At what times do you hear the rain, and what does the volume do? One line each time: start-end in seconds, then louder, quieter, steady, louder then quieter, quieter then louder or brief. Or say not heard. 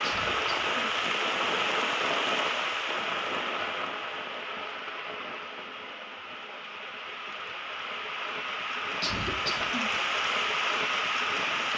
0.0-11.7 quieter then louder.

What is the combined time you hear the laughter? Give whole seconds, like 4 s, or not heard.
2 s.